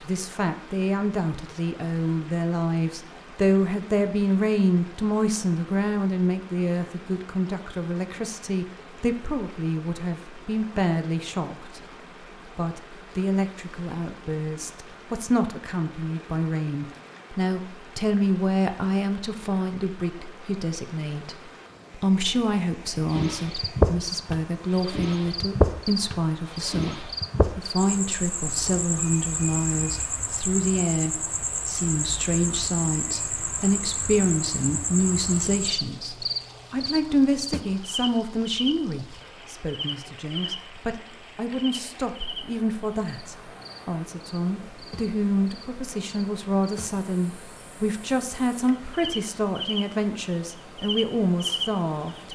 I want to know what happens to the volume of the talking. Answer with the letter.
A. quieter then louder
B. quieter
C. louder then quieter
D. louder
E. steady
E.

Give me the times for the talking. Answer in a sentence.
You can hear the talking from 0.0 to 11.8 s and from 12.4 to 52.3 s.